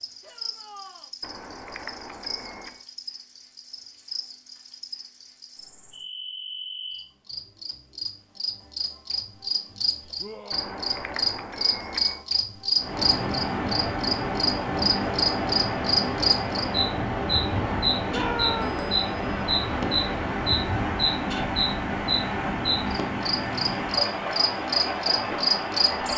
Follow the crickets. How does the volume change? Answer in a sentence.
The loudness of the crickets goes up.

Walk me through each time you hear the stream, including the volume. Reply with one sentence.
The stream can be heard from 12.8 to 26.1 s, at a steady volume.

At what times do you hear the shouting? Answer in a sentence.
The shouting can be heard from 0.2 to 1.1 s, from 10.2 to 11.3 s and from 18.1 to 18.9 s.